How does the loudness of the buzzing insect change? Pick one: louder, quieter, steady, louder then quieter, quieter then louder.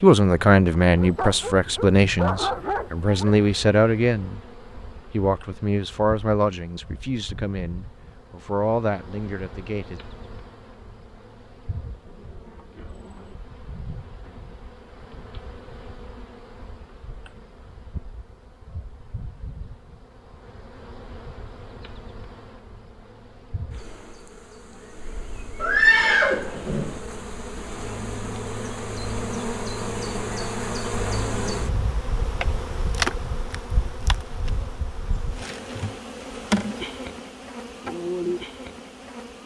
louder.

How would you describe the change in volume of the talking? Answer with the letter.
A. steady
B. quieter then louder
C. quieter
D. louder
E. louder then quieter
C.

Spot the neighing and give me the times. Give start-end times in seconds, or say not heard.
25.6-27.0.